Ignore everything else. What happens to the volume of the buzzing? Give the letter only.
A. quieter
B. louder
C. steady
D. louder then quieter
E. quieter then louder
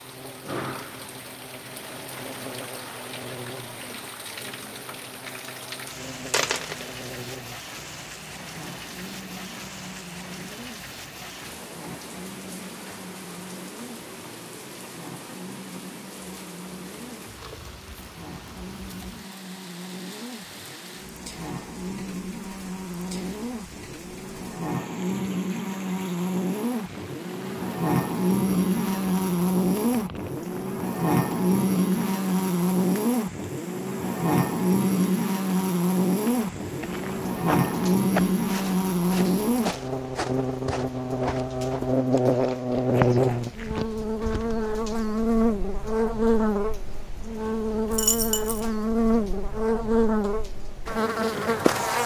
B.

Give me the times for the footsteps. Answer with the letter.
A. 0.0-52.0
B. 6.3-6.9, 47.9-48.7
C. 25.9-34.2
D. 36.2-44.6
D.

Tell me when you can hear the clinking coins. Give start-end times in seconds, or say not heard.
6.3-6.9, 47.9-48.7.